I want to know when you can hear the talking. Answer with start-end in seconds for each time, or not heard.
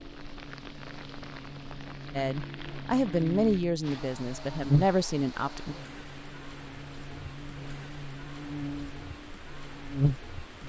2.1-5.8.